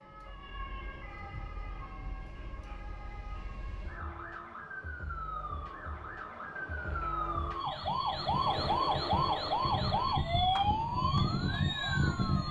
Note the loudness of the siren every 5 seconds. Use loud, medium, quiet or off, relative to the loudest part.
quiet, loud, loud.